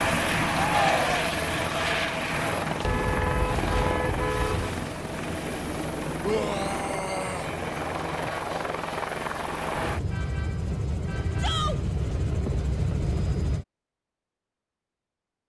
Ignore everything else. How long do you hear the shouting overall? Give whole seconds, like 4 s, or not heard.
2 s.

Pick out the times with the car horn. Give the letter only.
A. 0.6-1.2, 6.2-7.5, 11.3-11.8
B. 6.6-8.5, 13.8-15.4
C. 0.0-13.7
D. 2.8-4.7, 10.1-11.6
D.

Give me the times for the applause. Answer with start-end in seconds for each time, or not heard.
not heard.